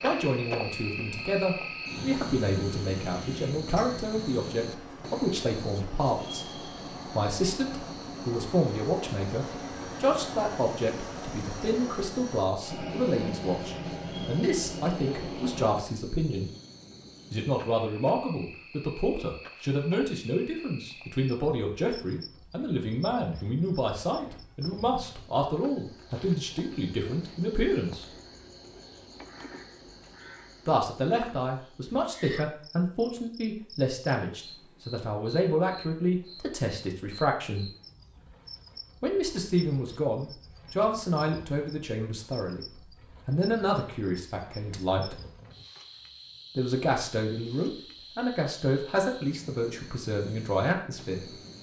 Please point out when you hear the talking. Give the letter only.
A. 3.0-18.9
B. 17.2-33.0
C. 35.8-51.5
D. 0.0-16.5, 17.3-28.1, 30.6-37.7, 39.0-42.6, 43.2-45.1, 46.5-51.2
D.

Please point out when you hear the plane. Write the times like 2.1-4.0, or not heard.
0.0-15.8.